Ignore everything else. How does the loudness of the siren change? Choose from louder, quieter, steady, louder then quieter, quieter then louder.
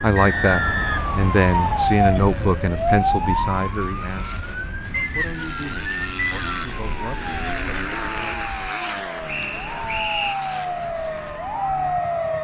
quieter then louder.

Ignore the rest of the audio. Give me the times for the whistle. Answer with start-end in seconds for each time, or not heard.
0.1-1.9, 4.9-6.7, 9.2-10.3.